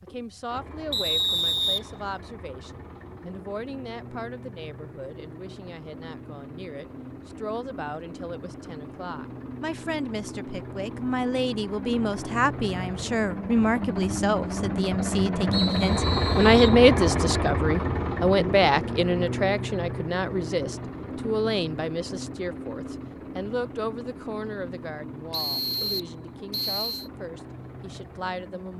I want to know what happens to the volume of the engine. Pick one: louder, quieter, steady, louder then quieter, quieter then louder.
louder then quieter.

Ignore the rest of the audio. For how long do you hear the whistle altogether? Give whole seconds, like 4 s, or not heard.
4 s.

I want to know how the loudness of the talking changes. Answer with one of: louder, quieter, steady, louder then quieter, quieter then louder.
louder then quieter.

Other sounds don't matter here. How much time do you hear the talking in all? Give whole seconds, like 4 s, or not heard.
29 s.